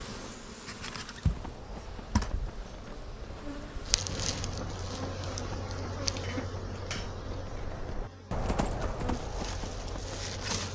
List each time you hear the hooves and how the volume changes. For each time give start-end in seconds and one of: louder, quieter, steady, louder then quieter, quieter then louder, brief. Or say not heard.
1.2-10.6 louder.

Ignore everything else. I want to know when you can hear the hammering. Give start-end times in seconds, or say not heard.
6.2-7.7.